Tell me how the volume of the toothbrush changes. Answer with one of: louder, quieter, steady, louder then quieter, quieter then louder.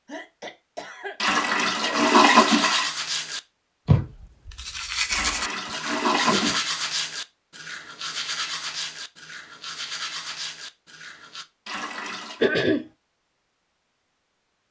quieter.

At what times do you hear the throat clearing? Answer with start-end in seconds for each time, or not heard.
0.1-2.1, 5.7-6.6, 12.4-12.8.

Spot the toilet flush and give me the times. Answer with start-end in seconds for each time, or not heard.
1.2-2.9, 5.1-6.6, 11.7-12.5.